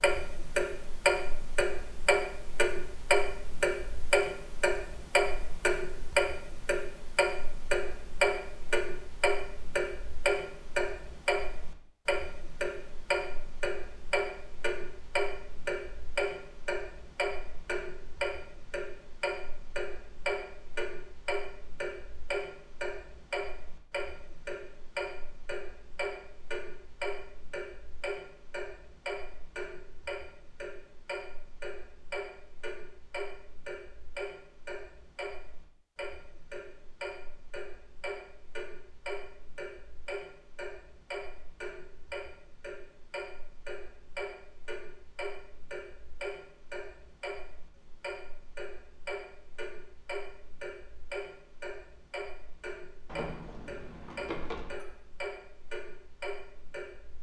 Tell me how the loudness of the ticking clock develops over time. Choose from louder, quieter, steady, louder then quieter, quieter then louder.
quieter.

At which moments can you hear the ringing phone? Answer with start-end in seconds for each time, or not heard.
53.0-54.9.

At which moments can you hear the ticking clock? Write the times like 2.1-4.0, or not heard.
0.0-57.1.